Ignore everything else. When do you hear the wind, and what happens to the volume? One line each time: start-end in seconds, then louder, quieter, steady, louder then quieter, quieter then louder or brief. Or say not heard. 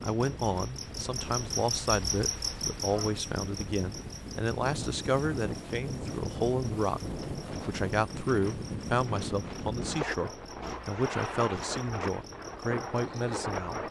0.0-13.8 louder.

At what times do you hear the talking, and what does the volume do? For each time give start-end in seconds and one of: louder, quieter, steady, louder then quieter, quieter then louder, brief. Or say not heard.
0.0-13.8 steady.